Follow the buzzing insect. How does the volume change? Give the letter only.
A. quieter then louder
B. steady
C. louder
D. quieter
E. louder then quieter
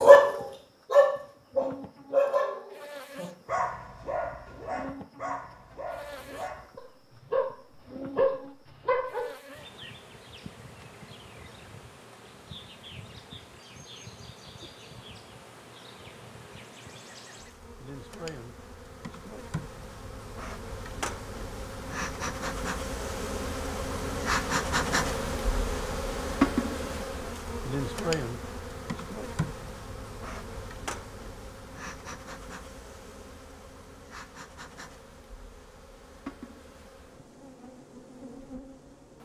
E.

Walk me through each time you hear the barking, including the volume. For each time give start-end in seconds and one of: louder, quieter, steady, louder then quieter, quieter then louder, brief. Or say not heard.
0.0-9.2 quieter then louder.